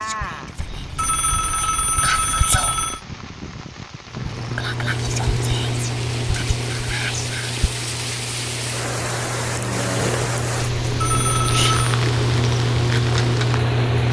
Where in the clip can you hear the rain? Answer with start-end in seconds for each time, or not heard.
0.0-14.0.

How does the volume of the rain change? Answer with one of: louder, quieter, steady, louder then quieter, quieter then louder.
louder.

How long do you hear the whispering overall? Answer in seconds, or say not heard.
6 s.